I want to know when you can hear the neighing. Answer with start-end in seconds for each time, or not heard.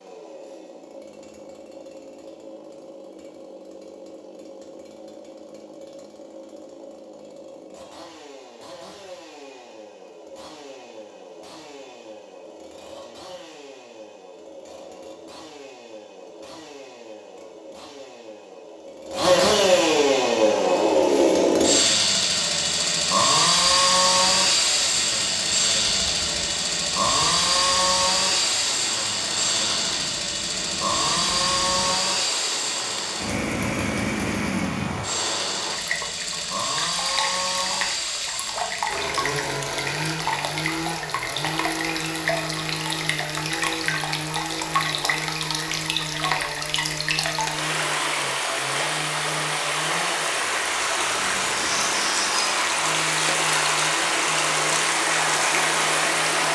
not heard.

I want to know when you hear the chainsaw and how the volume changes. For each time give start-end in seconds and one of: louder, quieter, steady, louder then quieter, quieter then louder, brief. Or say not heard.
0.0-56.5 louder then quieter.